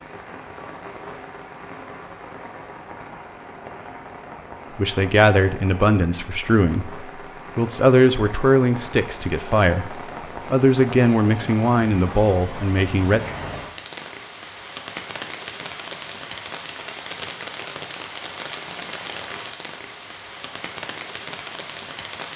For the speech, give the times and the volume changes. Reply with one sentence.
You can hear the speech from 4.8 to 13.2 s, at a steady volume.